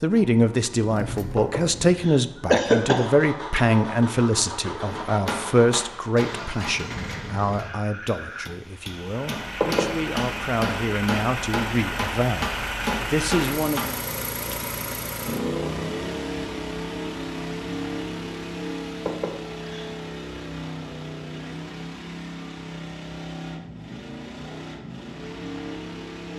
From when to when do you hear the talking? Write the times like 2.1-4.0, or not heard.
0.0-13.9.